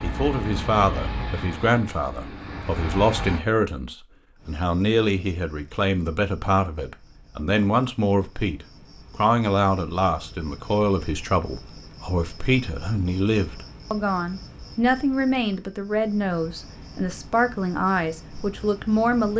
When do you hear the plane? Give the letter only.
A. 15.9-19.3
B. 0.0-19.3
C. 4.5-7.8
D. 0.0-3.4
D.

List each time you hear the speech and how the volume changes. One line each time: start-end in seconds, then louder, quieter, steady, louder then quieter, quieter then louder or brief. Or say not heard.
0.0-19.3 steady.